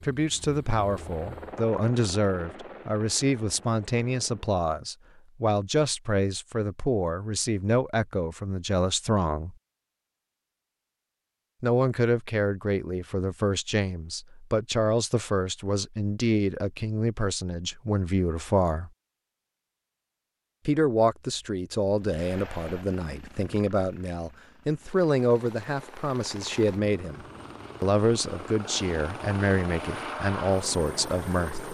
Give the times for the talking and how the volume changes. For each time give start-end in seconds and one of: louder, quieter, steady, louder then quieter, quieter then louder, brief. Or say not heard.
0.0-9.6 steady
11.6-18.9 steady
20.6-31.6 steady.